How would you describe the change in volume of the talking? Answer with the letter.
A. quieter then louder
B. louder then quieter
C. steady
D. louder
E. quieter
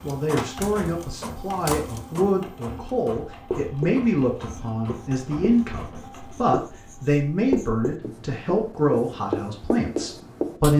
C.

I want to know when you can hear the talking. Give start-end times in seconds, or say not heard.
0.0-10.7.